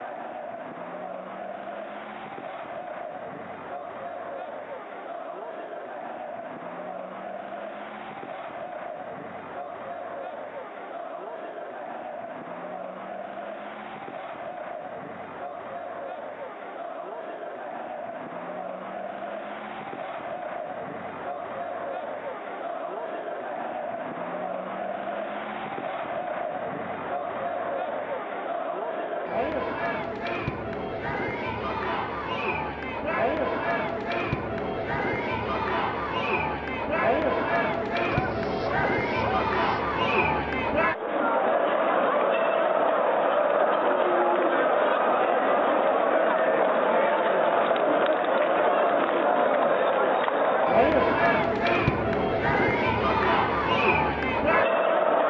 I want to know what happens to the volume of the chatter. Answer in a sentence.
The loudness of the chatter goes up.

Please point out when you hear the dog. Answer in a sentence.
The dog can be heard from 38.1 to 39.9 s.